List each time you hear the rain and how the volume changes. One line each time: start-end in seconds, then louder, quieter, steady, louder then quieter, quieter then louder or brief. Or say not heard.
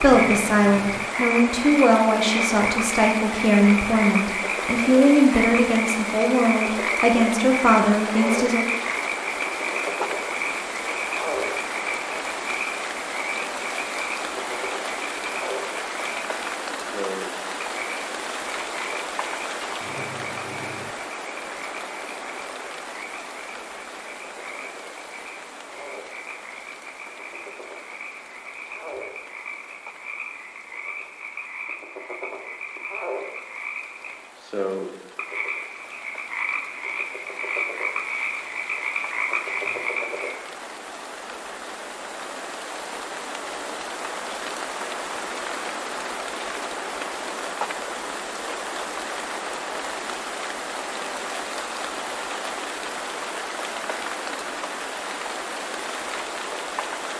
0.0-57.1 quieter then louder.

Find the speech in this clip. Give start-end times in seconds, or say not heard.
0.0-8.7.